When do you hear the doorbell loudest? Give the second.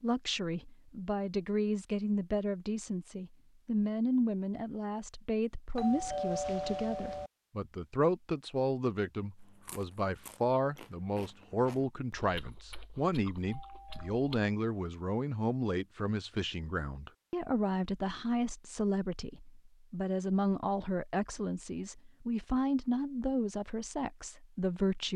6 s.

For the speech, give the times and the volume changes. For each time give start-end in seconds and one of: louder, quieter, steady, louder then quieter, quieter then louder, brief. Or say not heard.
0.0-25.1 steady.